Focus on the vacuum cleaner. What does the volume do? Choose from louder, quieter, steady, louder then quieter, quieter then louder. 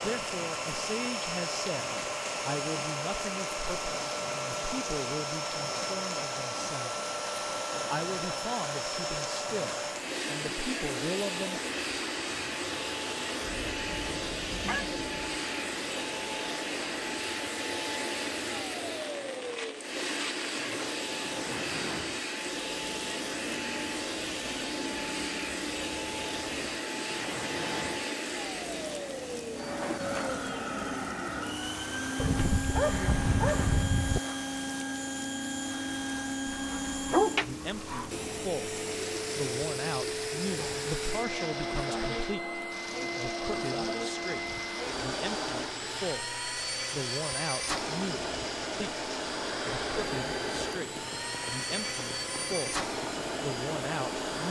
steady.